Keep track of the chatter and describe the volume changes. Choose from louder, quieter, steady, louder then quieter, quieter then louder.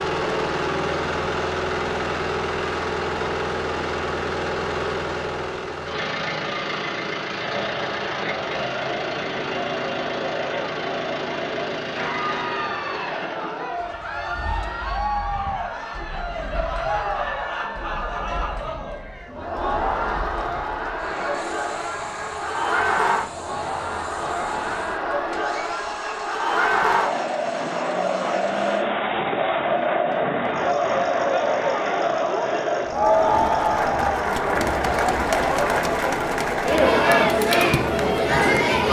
louder.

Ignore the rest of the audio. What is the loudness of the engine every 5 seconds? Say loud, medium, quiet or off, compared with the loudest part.
loud, loud, medium, quiet, quiet, quiet, quiet, off.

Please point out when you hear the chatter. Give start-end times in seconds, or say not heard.
7.3-38.8.